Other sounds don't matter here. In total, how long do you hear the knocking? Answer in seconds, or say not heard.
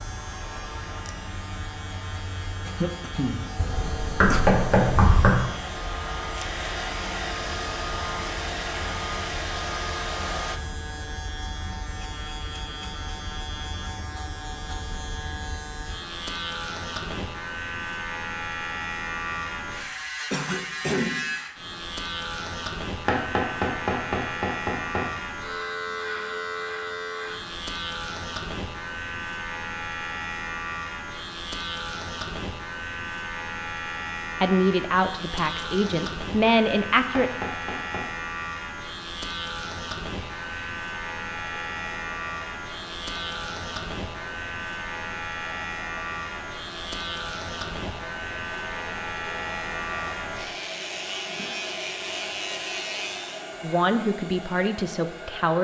5 s.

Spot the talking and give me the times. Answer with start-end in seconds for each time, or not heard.
34.4-37.3, 53.6-55.5.